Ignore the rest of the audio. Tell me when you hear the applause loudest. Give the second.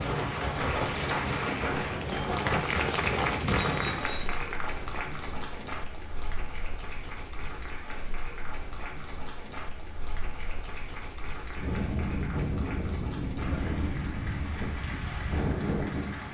3 s.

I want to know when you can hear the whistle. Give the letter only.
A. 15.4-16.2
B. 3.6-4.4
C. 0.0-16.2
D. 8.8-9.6
B.